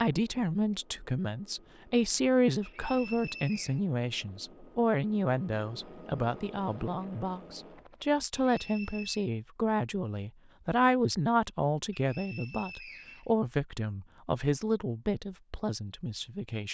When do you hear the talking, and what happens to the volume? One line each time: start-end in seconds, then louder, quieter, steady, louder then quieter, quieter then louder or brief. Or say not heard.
0.0-16.7 steady.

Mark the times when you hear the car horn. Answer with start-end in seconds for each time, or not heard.
not heard.